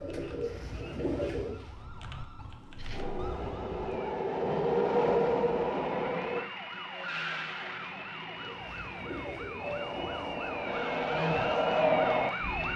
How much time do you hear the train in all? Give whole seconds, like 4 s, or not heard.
7 s.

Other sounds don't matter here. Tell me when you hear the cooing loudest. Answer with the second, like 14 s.
1 s.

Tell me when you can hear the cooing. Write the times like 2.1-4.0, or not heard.
0.0-1.8, 8.3-10.7.